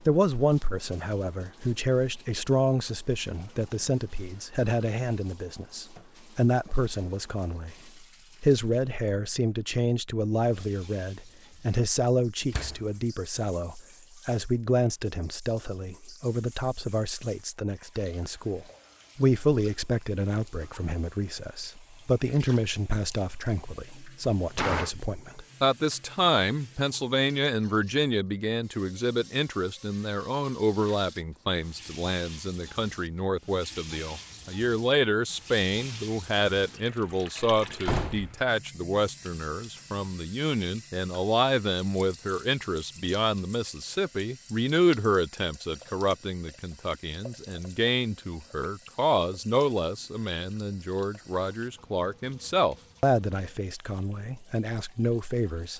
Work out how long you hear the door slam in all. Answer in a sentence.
The door slam can be heard for 2 seconds in total.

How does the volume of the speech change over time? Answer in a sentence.
The loudness of the speech stays about the same.